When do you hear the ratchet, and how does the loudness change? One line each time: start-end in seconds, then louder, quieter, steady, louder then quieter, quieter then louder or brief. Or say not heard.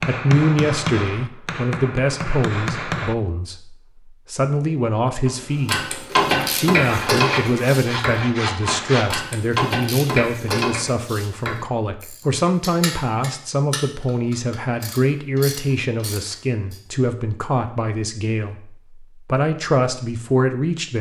5.2-16.8 quieter.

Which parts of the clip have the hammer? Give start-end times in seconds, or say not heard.
0.0-3.1.